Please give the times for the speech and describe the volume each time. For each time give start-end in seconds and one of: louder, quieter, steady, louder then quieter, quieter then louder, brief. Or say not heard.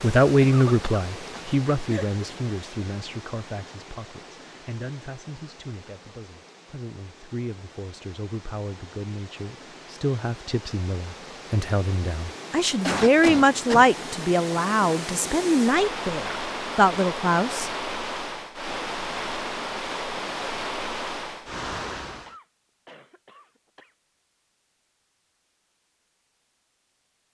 0.0-17.7 quieter then louder.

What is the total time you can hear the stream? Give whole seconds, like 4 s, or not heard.
22 s.